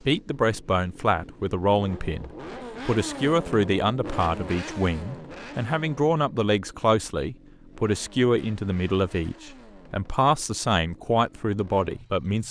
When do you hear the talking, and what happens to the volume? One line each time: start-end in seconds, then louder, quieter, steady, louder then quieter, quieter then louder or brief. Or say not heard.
0.1-12.4 steady.